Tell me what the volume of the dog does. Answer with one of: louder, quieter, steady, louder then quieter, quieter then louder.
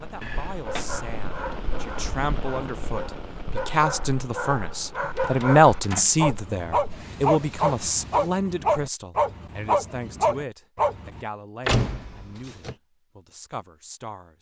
louder.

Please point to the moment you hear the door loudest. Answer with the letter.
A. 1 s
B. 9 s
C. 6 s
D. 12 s
D.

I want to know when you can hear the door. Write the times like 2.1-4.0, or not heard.
0.2-1.4, 5.0-6.1, 11.7-12.8.